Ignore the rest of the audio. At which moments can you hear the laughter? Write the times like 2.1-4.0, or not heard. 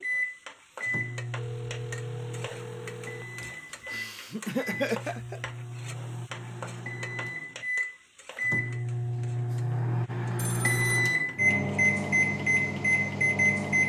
3.4-5.5.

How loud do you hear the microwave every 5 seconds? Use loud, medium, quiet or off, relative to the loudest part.
medium, medium, loud.